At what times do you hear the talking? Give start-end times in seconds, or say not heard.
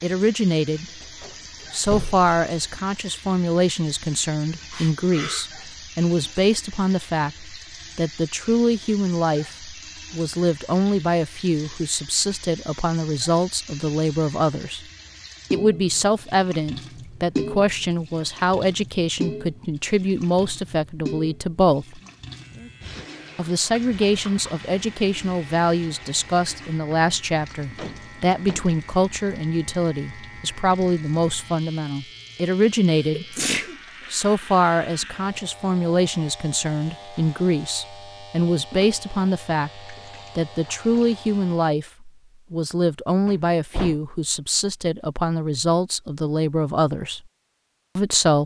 0.0-0.8, 1.7-14.8, 15.5-22.0, 23.4-33.4, 34.1-47.2, 48.0-48.4.